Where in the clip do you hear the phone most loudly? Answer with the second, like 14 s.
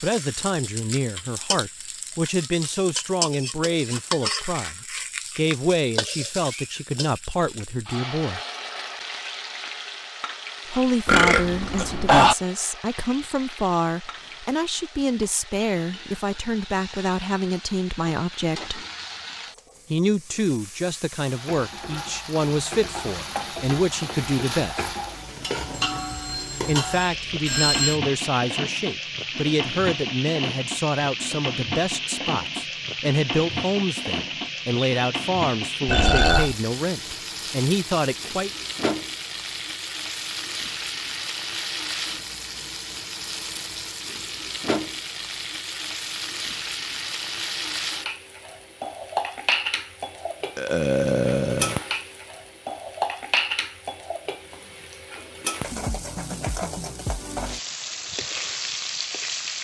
28 s.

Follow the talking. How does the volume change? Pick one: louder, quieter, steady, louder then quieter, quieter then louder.
steady.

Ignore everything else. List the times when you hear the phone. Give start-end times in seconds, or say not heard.
25.8-28.0, 35.9-36.5.